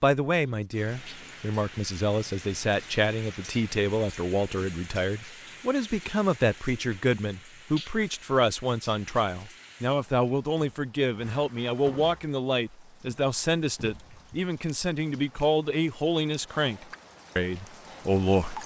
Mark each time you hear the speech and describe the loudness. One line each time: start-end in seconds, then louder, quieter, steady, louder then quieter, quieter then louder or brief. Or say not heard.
0.0-18.6 steady.